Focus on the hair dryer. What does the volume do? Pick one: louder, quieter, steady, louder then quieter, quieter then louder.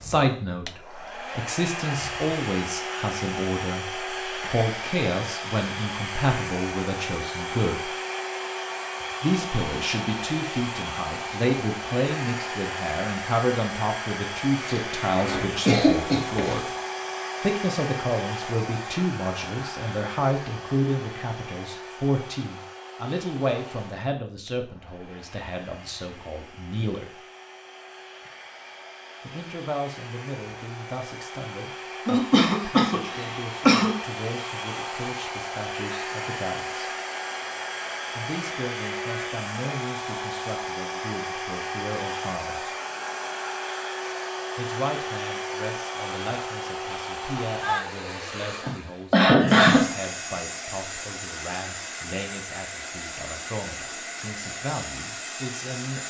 quieter then louder.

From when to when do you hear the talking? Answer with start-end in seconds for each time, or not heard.
0.0-7.9, 9.2-16.6, 17.4-27.1, 29.2-36.9, 38.1-42.6, 44.5-56.0.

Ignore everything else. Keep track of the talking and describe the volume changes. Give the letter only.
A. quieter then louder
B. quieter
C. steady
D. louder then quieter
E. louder
B.